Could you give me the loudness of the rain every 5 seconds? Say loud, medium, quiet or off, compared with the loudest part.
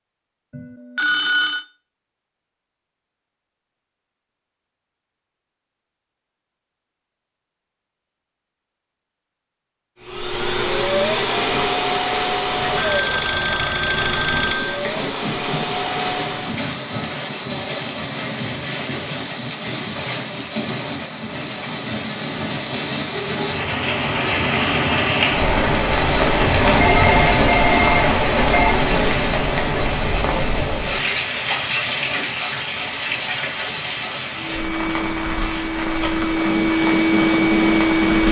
off, off, medium, medium, medium, loud, medium, medium.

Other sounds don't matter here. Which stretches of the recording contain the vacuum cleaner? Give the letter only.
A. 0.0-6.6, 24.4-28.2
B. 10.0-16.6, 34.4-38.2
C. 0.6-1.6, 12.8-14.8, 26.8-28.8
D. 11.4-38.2
B.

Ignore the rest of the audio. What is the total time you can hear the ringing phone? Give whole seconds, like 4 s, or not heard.
5 s.